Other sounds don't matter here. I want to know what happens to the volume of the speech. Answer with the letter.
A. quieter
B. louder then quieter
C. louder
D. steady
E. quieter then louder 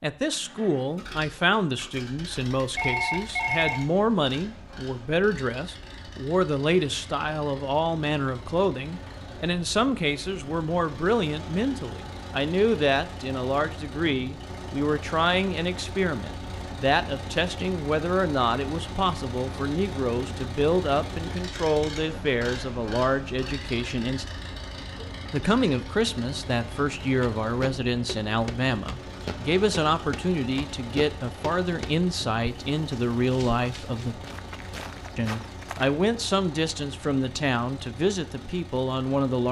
D.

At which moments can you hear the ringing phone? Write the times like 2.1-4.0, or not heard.
2.3-3.8.